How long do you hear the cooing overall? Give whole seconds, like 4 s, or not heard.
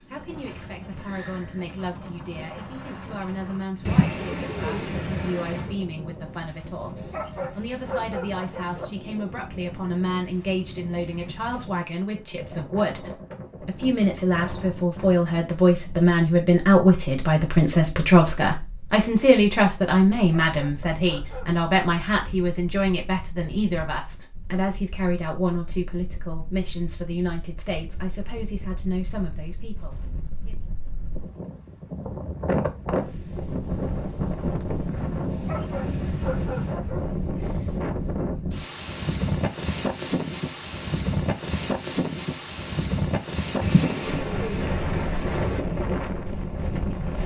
4 s.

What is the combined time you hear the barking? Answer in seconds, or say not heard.
5 s.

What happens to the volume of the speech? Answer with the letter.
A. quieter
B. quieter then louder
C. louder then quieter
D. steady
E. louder
C.